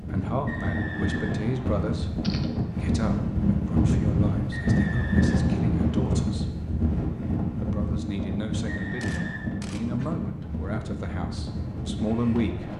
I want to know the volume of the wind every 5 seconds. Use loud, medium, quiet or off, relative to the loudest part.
loud, loud, medium.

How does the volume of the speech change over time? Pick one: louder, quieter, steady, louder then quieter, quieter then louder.
quieter then louder.